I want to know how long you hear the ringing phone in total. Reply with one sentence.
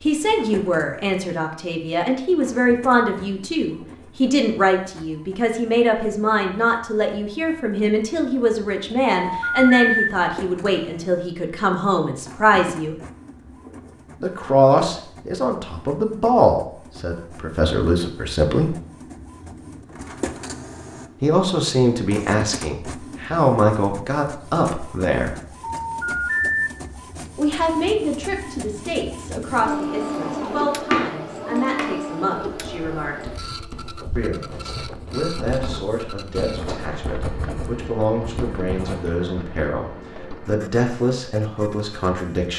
The ringing phone can be heard for 2 seconds in total.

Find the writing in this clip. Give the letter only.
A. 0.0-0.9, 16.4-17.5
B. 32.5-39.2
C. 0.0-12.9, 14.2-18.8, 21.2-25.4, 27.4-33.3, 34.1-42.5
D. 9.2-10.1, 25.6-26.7
B.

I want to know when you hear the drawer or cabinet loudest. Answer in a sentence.
The loudest moment of the drawer or cabinet is at 31 seconds.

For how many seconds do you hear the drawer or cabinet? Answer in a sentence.
You can hear the drawer or cabinet for 2 seconds altogether.